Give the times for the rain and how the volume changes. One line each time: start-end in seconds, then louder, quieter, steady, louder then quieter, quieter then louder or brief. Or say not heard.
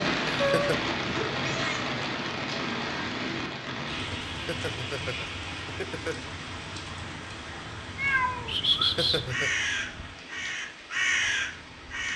0.0-12.1 quieter.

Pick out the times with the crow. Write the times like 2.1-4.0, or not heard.
8.7-12.1.